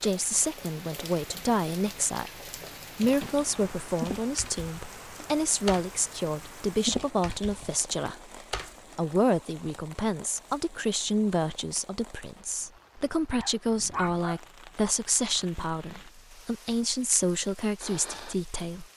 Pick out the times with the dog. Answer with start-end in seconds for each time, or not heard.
13.3-14.4.